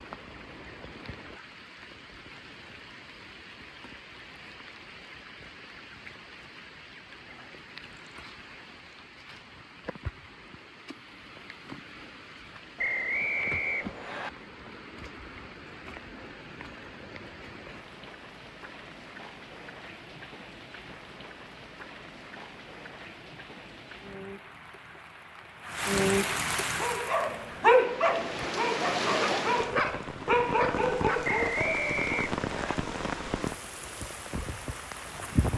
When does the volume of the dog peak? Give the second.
28 s.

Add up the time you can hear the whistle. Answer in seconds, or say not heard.
3 s.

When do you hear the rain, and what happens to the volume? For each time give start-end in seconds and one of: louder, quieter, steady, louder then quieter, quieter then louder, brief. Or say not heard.
0.0-35.5 louder.